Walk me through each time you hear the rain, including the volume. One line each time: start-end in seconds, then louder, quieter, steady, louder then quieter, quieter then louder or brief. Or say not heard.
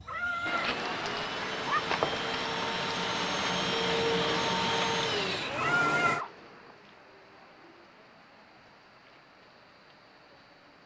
0.5-10.8 quieter.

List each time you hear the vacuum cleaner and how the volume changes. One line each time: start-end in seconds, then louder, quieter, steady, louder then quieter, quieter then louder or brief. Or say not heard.
0.0-6.2 louder.